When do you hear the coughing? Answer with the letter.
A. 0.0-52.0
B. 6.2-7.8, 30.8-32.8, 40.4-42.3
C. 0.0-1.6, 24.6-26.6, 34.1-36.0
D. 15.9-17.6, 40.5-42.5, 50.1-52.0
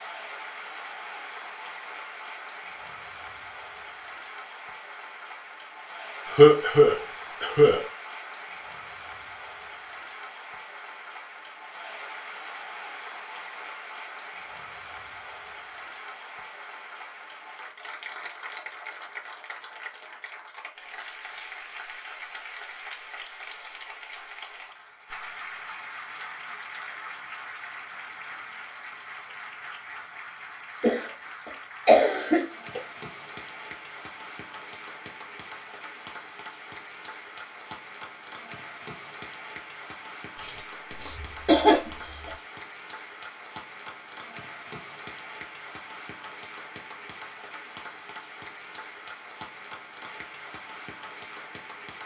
B.